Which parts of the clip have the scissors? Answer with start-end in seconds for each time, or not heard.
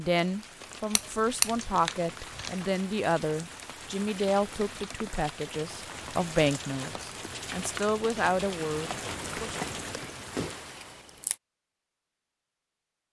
0.9-1.6, 9.9-11.3.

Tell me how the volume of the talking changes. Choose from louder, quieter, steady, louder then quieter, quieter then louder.
steady.